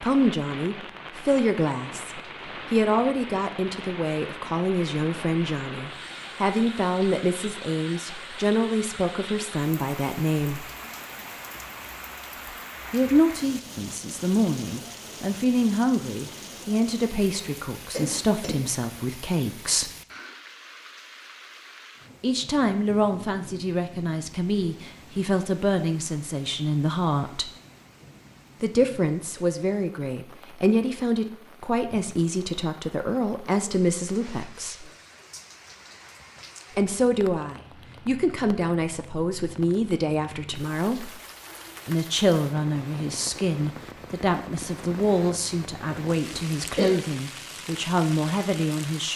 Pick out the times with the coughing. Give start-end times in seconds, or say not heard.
17.9-18.6, 46.2-47.0.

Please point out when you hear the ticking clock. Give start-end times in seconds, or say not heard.
not heard.